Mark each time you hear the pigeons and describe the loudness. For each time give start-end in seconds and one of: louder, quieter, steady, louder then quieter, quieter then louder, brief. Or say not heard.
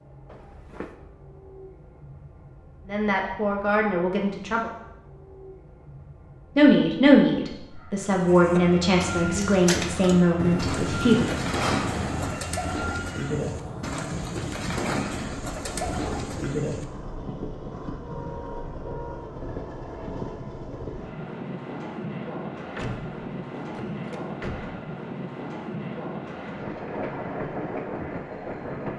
8.2-16.9 steady.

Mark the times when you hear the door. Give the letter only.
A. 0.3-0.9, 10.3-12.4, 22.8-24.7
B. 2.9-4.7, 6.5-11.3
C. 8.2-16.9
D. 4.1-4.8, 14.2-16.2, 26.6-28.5
A.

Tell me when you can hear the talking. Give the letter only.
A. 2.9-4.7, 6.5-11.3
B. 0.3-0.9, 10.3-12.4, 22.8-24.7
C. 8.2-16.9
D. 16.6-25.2
A.